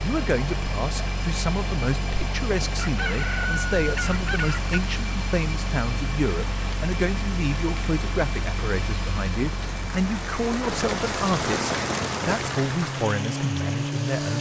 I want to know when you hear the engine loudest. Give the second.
14 s.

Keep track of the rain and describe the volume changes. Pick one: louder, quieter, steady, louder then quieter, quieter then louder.
louder.